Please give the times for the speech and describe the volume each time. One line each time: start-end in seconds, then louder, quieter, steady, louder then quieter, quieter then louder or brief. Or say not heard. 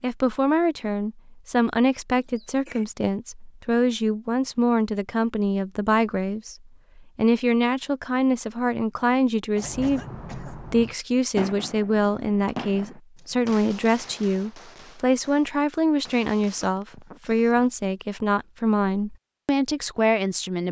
0.0-20.6 steady.